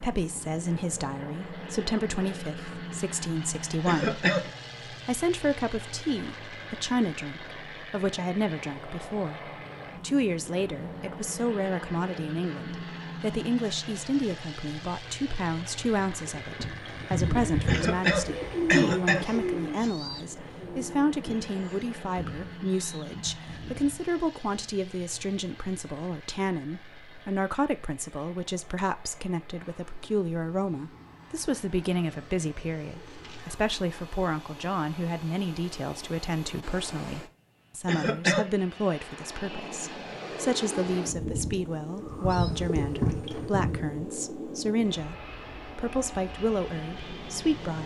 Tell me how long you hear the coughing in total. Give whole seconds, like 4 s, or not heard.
3 s.